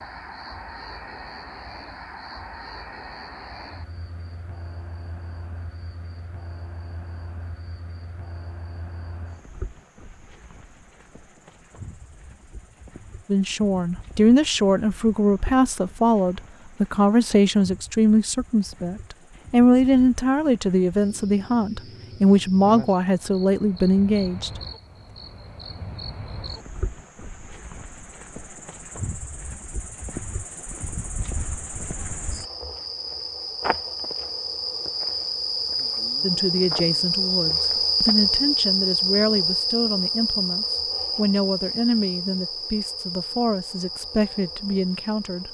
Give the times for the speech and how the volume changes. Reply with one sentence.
The speech can be heard from 13.2 to 24.5 s, at a steady volume; and from 36.2 to 45.4 s, at a steady volume.